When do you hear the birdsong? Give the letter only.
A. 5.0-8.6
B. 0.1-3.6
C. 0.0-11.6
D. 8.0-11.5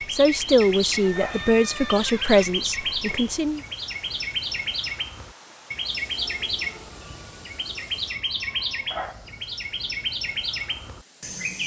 C.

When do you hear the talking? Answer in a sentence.
The talking can be heard from 0.1 to 3.6 s.